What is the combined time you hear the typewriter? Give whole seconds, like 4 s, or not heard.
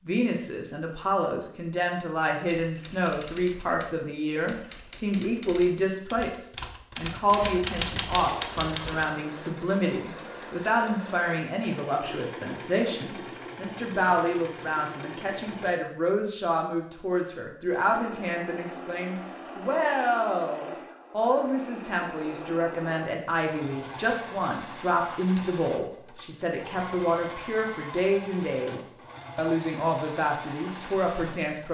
7 s.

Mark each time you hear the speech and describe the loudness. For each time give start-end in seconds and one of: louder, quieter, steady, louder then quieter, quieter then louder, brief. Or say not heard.
0.0-31.6 steady.